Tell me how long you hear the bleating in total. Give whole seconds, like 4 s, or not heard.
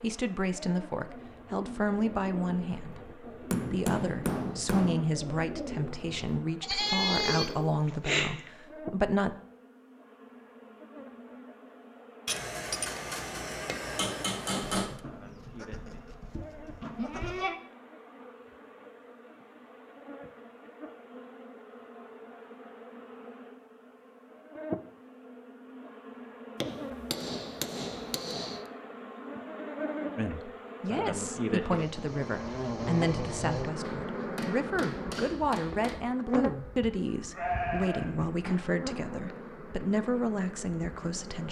6 s.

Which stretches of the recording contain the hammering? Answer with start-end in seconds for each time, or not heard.
3.5-5.0, 12.2-15.0, 26.6-28.6, 33.8-36.0.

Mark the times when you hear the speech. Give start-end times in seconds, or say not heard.
0.0-9.3, 30.1-41.4.